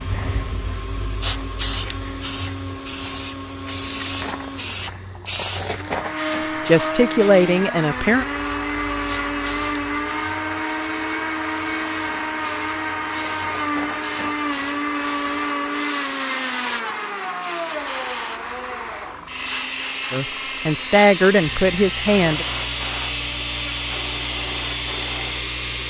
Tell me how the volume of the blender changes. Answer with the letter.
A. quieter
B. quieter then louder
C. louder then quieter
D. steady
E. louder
E.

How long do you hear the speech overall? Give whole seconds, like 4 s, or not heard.
4 s.